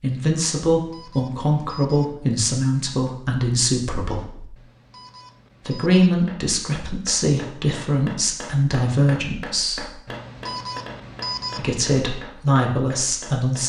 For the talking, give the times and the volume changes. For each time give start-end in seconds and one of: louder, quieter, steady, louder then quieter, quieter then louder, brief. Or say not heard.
0.0-4.5 steady
5.7-9.9 steady
11.6-13.6 brief.